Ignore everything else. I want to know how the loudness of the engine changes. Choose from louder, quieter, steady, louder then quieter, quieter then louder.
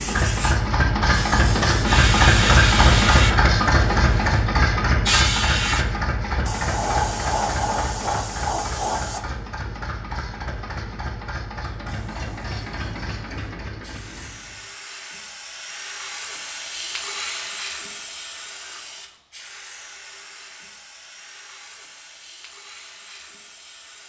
quieter.